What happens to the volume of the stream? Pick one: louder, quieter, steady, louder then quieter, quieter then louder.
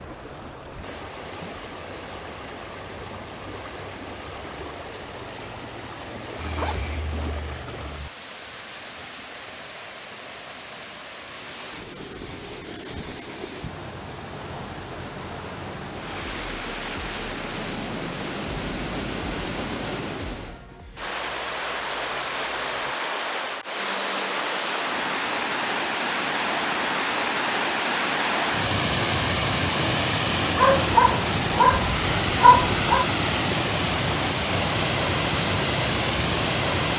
louder.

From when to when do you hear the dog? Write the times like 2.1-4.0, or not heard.
30.6-33.0.